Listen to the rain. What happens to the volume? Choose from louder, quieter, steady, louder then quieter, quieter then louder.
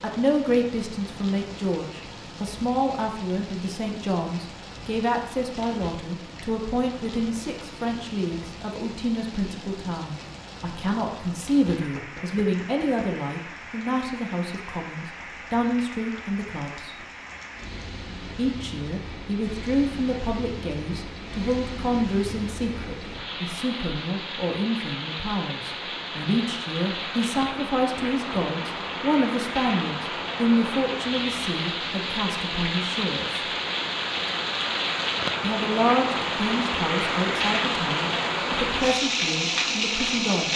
louder.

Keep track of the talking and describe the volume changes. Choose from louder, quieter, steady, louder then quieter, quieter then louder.
steady.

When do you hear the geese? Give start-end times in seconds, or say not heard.
not heard.